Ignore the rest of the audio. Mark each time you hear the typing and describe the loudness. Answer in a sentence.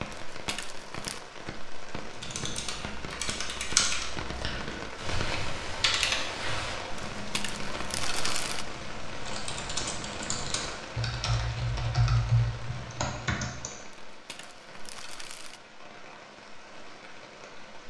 The typing can be heard from 2.1 to 13.7 s, getting quieter then louder.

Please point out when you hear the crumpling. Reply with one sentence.
The crumpling can be heard from 0.1 to 1.2 s, from 7.2 to 8.7 s and from 14.1 to 15.6 s.